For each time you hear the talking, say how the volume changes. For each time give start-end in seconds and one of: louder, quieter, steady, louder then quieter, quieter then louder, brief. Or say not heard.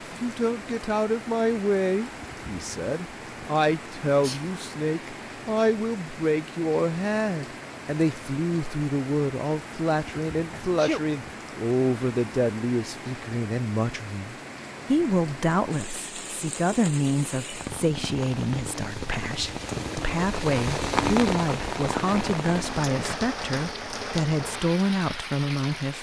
0.0-25.9 steady.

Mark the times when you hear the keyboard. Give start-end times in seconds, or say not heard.
not heard.